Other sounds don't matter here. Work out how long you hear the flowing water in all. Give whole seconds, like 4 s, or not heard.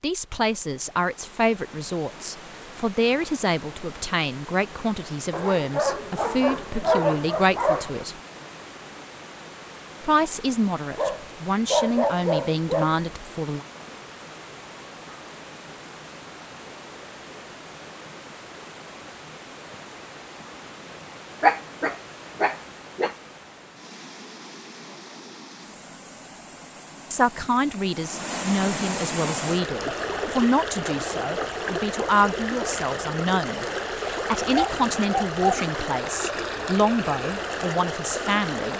39 s.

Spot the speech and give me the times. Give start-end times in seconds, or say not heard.
0.0-8.2, 10.0-13.7, 27.1-38.7.